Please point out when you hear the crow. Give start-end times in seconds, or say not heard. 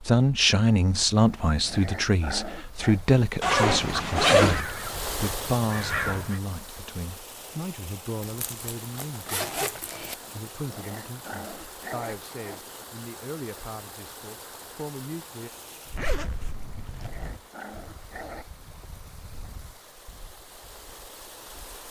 3.8-6.4.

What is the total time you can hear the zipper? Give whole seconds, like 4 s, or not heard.
5 s.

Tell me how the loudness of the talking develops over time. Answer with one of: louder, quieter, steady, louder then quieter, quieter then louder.
quieter.